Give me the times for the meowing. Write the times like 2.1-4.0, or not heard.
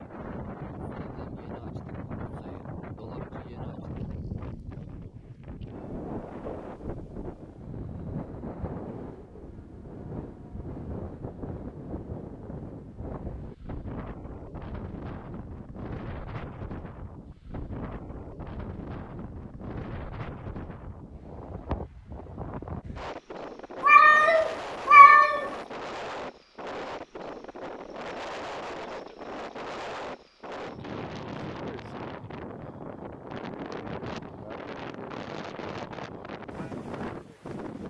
23.8-25.5.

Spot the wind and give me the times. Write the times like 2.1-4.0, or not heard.
0.0-37.8.